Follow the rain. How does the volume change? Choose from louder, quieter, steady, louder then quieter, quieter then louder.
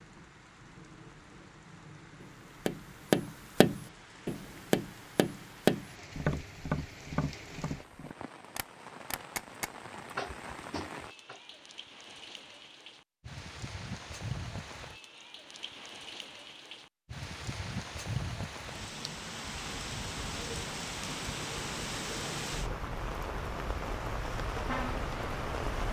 louder.